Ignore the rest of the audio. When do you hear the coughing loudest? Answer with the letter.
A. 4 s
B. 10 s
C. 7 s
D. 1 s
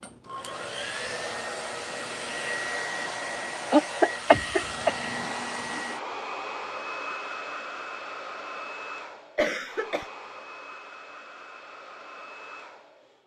A.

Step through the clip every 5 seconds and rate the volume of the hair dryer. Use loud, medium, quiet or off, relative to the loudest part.
loud, loud, medium.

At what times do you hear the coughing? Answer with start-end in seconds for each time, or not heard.
3.7-4.9, 9.3-10.1.